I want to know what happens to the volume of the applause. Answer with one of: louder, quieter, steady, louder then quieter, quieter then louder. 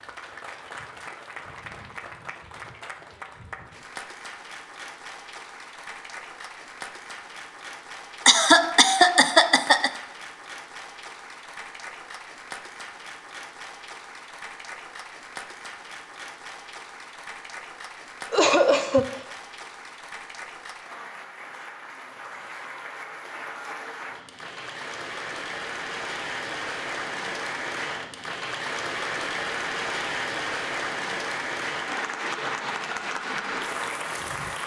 louder.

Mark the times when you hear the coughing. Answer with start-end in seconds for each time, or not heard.
8.2-9.9, 18.3-19.2.